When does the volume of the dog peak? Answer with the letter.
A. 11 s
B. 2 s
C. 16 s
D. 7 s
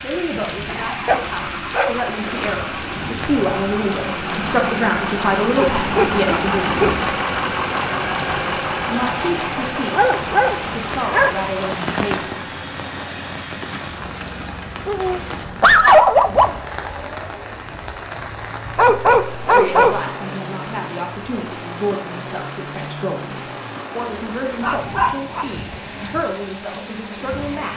C.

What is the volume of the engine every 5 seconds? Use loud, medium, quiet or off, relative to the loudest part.
medium, loud, medium, quiet, quiet, quiet.